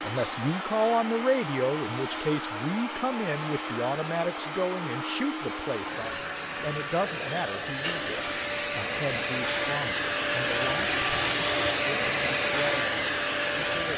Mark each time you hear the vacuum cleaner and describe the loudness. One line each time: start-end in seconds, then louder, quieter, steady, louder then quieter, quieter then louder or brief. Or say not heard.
0.0-13.9 louder.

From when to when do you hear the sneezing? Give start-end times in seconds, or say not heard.
0.1-0.5, 7.5-8.1.